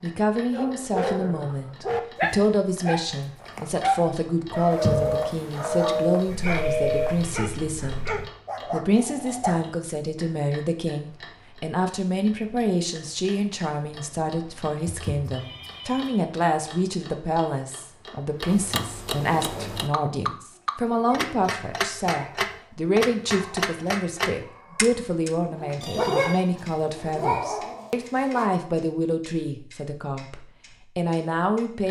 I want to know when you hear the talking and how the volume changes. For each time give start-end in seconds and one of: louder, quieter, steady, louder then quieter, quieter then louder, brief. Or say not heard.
0.0-31.8 steady.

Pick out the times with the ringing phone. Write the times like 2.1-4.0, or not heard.
4.7-7.4, 14.8-16.2, 25.8-26.4.